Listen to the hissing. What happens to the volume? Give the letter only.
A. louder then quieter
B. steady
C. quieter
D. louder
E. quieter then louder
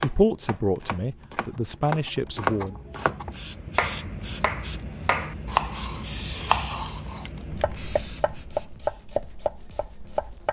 B.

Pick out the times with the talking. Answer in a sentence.
You can hear the talking from 0.0 to 2.8 s.